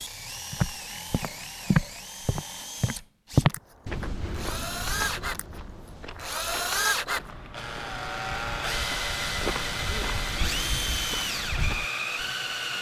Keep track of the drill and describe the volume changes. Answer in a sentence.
The loudness of the drill goes up.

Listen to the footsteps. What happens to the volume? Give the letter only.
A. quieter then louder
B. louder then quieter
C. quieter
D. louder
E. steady
A.